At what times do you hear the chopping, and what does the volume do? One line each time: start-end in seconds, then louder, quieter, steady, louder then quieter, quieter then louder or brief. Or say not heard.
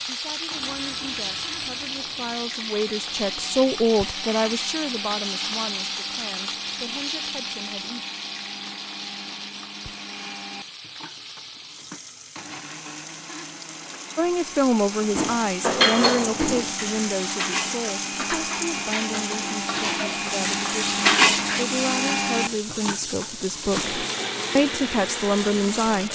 not heard.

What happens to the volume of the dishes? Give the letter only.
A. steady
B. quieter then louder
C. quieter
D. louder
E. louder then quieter
B.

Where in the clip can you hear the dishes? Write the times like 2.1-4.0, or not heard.
15.2-21.6.